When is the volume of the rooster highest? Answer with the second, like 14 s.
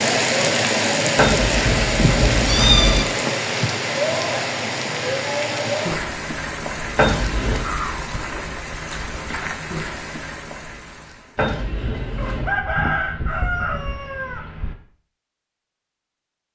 13 s.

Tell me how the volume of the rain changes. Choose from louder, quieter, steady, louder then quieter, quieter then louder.
quieter.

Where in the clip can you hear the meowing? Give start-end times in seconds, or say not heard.
1.1-3.0, 7.0-7.7, 11.3-12.5.